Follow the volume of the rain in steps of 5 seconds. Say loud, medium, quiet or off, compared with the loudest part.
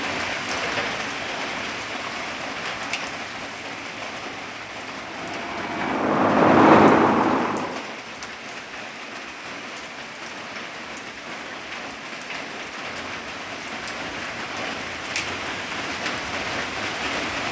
loud, medium, medium, loud.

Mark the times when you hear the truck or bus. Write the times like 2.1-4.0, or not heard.
4.8-8.1.